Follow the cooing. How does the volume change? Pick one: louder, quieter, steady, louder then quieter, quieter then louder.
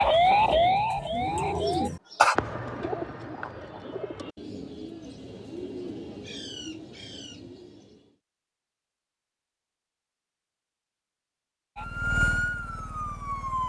quieter.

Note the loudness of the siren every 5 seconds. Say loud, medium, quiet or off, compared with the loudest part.
loud, off, medium.